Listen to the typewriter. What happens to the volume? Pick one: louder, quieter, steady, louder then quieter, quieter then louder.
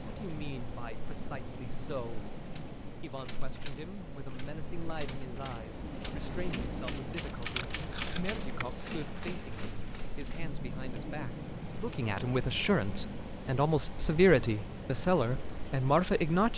louder.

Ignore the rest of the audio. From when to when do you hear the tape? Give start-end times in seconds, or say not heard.
7.5-8.7.